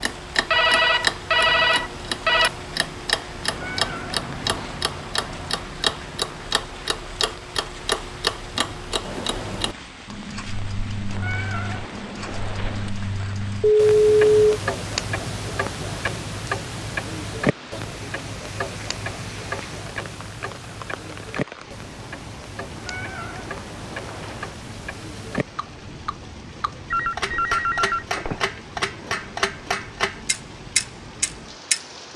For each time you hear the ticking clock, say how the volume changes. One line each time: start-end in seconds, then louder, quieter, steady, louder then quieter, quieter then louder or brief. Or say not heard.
0.0-32.1 quieter then louder.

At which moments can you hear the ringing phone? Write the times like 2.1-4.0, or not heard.
0.5-2.5, 13.6-14.6, 26.9-28.4.